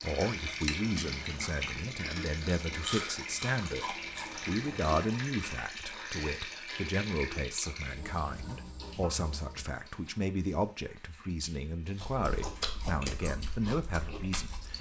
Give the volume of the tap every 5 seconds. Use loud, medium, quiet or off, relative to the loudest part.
loud, loud, quiet.